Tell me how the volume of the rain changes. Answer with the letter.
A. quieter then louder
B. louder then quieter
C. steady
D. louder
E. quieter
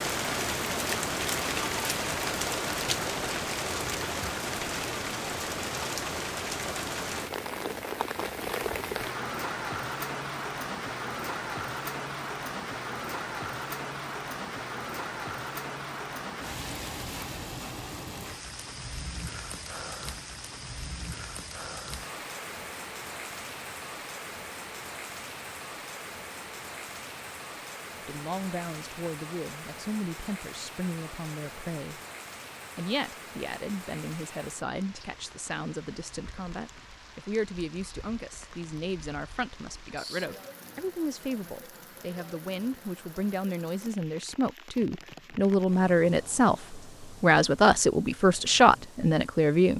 E.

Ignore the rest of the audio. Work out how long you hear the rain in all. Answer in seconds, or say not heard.
50 s.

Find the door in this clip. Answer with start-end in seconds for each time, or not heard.
not heard.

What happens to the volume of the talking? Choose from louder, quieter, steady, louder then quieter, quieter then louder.
louder.